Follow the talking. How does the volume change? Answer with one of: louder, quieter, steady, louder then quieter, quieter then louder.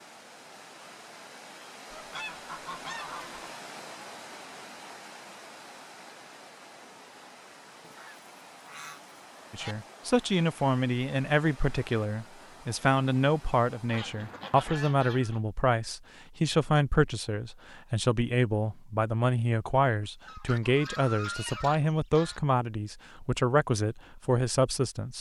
steady.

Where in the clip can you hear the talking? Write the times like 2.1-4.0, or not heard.
9.5-25.1.